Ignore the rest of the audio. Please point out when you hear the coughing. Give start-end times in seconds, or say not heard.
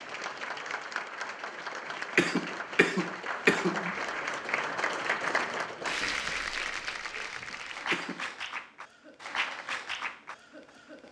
2.1-4.0, 7.9-8.3.